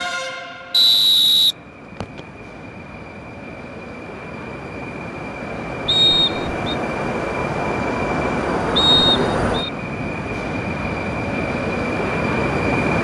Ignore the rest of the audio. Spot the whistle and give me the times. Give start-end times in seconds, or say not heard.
0.7-2.2, 5.8-6.6, 8.8-9.7.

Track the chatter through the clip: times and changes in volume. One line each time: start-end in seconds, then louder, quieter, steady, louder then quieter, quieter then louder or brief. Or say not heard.
not heard.